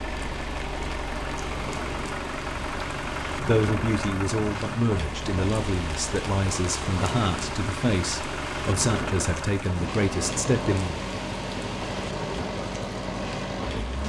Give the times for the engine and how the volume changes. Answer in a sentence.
The engine can be heard from 0.0 to 14.0 s, at a steady volume.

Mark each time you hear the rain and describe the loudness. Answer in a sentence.
You can hear the rain from 0.0 to 14.0 s, at a steady volume.